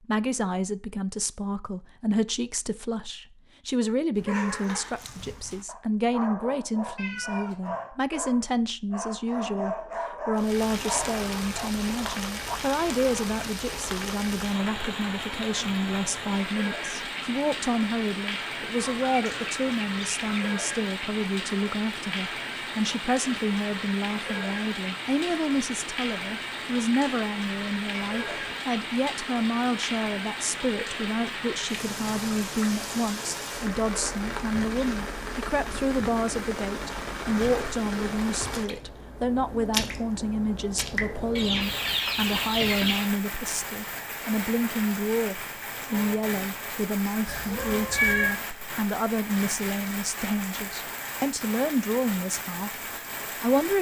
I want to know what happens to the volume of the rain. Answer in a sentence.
The loudness of the rain stays about the same.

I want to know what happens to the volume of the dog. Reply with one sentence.
The loudness of the dog goes up.